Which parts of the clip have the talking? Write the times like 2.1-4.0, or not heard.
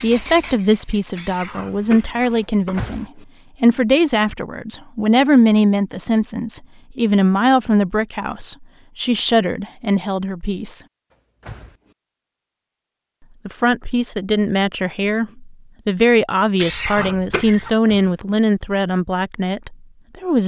0.0-10.8, 13.4-20.4.